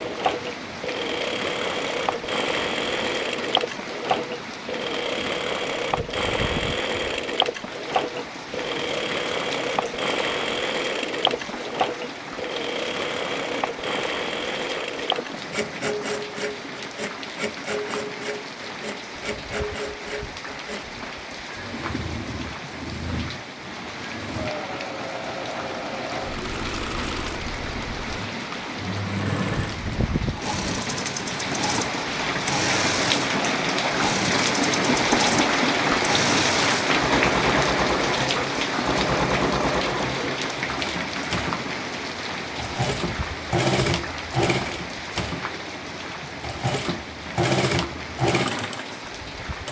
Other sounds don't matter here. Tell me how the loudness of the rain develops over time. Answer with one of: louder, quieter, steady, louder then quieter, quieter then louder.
louder then quieter.